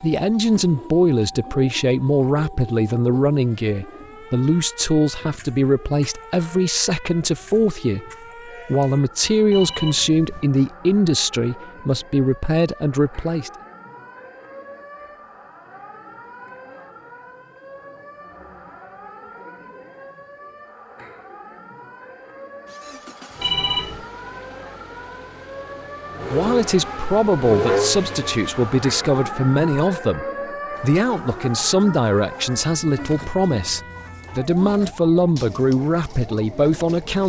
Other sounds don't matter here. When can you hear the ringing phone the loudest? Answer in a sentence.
The loudest moment of the ringing phone is at 24 seconds.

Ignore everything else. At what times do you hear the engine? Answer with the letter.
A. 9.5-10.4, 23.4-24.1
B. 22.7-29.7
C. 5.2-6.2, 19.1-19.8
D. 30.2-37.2
B.